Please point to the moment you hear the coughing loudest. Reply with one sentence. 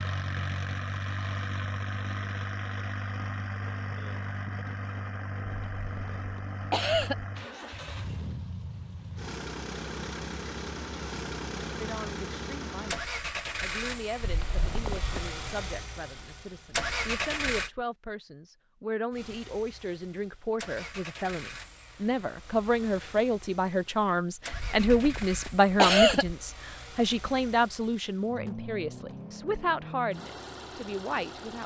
The loudest moment of the coughing is at 26 seconds.